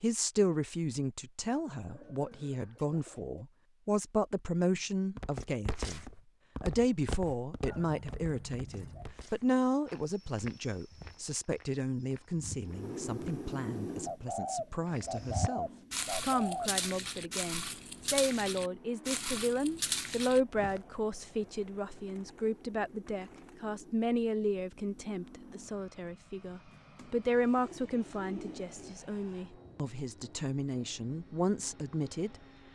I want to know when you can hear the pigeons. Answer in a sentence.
You can hear the pigeons from 1.5 to 3.4 s, from 7.7 to 9.2 s, from 14.1 to 16.8 s, from 21.2 to 23.6 s and from 26.9 to 28.9 s.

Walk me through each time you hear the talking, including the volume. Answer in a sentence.
The talking can be heard from 0.0 to 32.7 s, at a steady volume.